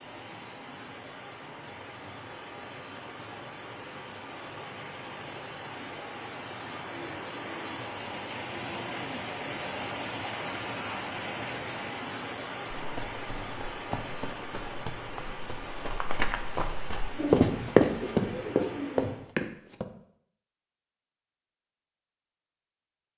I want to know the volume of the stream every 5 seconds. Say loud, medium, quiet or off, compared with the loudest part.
medium, loud, loud, medium, off.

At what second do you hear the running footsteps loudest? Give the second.
18 s.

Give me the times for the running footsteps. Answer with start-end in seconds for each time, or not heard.
12.8-19.9.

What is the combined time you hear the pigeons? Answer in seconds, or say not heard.
2 s.